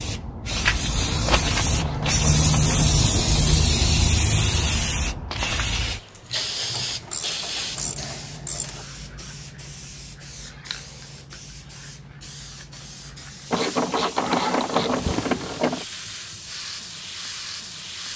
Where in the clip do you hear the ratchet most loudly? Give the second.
14 s.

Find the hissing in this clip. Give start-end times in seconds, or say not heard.
0.0-18.1.